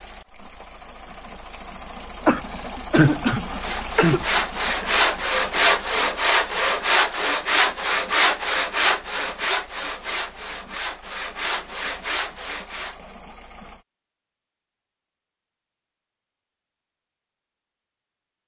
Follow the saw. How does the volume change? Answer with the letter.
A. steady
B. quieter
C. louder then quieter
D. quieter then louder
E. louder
B.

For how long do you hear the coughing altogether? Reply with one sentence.
The coughing can be heard for 2 seconds in total.